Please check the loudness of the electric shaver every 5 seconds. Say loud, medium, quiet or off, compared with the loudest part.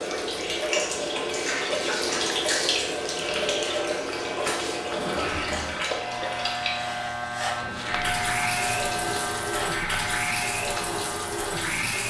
medium, loud, loud.